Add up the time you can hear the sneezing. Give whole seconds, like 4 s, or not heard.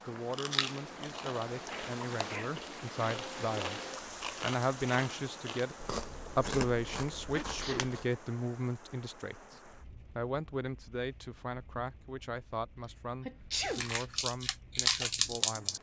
2 s.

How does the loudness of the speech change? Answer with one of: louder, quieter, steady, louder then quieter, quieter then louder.
louder then quieter.